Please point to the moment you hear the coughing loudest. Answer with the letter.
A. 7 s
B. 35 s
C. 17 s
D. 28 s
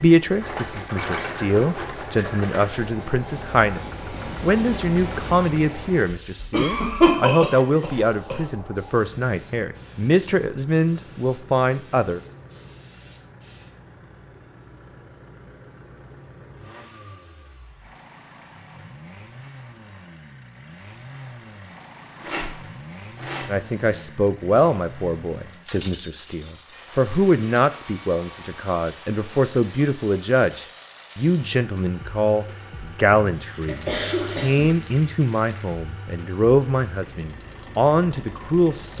A.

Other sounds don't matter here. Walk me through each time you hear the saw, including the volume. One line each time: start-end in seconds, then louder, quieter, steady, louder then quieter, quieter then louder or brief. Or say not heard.
not heard.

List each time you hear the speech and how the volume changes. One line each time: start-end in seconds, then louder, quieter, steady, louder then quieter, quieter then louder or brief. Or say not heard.
0.0-12.2 steady
23.4-38.9 steady.